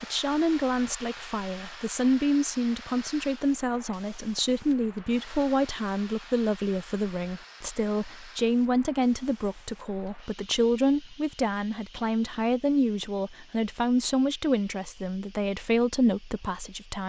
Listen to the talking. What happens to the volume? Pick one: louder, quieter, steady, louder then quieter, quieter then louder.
steady.